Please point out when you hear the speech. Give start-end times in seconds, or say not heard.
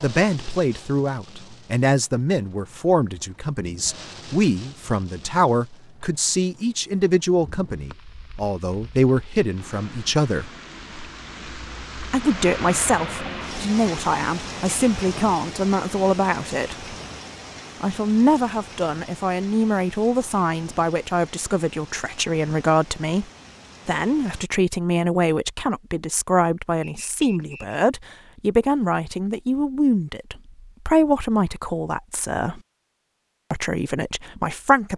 0.0-10.5, 12.1-16.9, 17.8-23.2, 23.9-32.6, 33.5-34.9.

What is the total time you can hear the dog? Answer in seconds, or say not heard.
not heard.